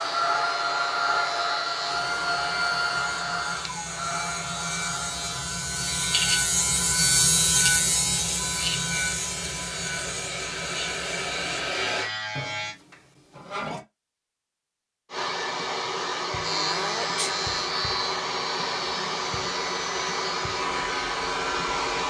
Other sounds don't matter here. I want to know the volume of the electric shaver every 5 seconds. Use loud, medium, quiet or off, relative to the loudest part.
medium, loud, medium, medium, medium.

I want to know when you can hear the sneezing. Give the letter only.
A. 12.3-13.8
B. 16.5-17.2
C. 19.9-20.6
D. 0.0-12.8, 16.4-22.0
B.